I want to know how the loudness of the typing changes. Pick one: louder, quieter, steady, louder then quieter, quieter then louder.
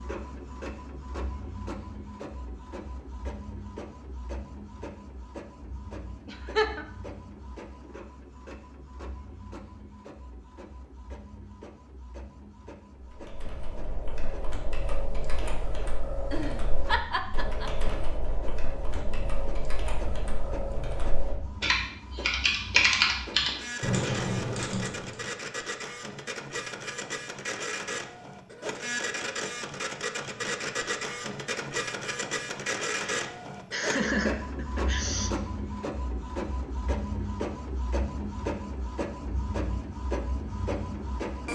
louder.